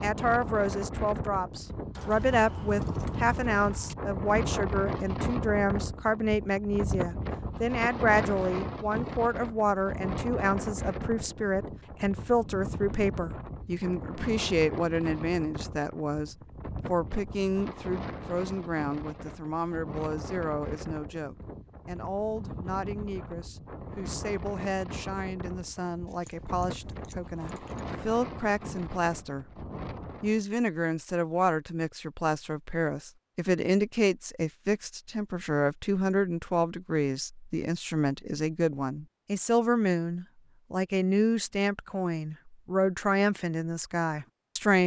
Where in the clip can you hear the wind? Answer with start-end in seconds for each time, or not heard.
0.0-30.4.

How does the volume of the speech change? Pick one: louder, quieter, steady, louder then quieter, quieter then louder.
quieter then louder.